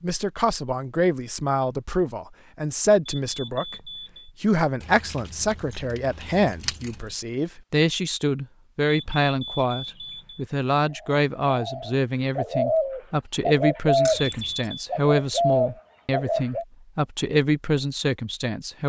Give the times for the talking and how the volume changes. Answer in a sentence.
The talking can be heard from 0.0 to 18.8 s, at a steady volume.